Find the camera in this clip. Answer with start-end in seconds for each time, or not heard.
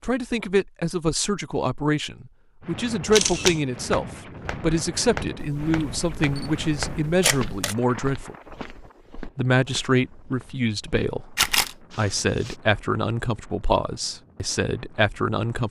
3.1-3.6, 5.3-7.8, 11.3-11.8.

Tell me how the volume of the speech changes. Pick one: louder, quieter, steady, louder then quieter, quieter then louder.
steady.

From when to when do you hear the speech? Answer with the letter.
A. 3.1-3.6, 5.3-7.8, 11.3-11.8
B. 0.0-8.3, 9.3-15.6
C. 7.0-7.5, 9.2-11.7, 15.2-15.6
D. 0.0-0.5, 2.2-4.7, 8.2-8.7
B.